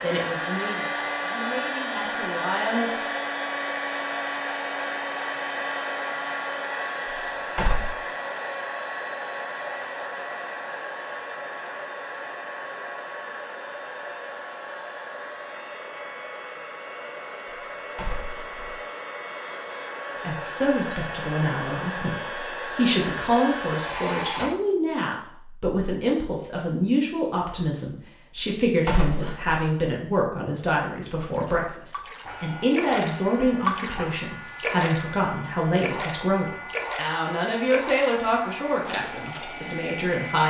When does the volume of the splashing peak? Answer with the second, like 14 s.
34 s.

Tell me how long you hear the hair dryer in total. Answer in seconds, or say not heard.
33 s.